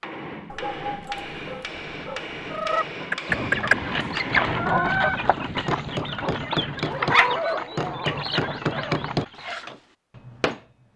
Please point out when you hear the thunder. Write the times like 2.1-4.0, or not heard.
3.2-6.9.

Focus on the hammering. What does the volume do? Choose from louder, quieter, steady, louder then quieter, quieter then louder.
louder.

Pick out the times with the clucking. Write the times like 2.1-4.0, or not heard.
2.5-9.7.